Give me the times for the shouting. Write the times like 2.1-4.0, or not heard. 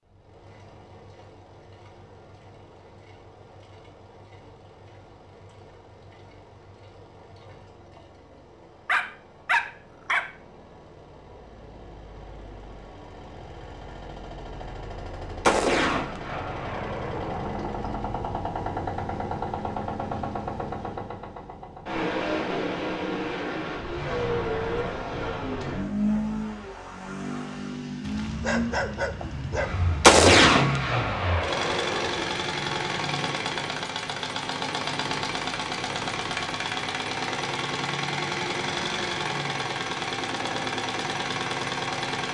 not heard.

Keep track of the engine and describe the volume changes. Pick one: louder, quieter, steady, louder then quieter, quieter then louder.
louder.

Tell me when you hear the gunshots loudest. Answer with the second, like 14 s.
30 s.